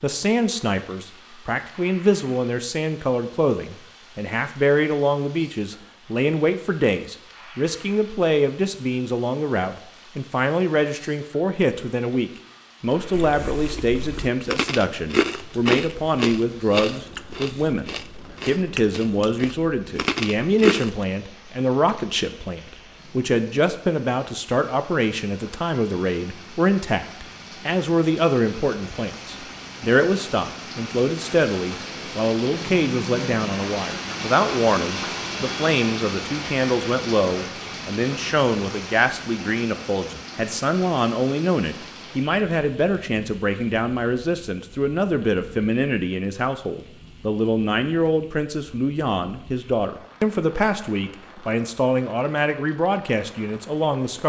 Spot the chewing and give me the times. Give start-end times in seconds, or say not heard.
13.1-21.1.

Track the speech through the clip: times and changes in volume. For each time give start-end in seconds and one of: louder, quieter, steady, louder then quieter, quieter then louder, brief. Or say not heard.
0.0-54.2 steady.